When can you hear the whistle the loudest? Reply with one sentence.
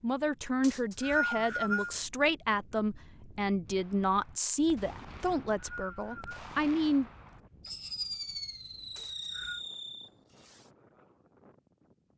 The volume of the whistle peaks at 1 second.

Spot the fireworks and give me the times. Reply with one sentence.
You can hear the fireworks from 3.7 to 10.7 s.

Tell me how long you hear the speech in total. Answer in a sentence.
You can hear the speech for 7 seconds altogether.